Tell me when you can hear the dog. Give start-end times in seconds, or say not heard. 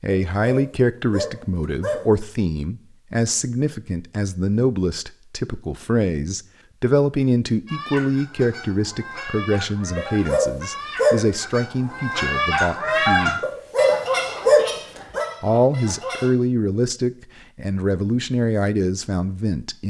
0.1-2.1, 9.9-11.3, 13.4-15.2.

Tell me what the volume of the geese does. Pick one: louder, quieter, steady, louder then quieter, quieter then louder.
louder then quieter.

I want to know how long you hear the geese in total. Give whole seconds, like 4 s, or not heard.
9 s.